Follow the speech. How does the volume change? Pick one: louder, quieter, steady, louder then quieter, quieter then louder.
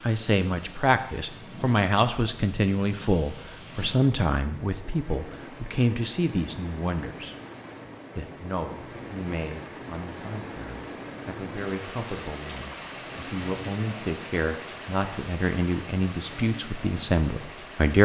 quieter then louder.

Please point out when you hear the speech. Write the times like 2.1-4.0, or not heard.
0.0-7.3, 8.2-18.0.